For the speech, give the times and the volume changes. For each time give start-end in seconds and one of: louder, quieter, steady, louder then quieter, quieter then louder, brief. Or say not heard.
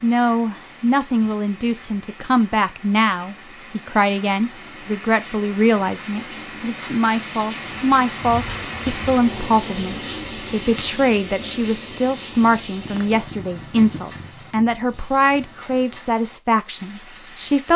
0.0-17.7 steady.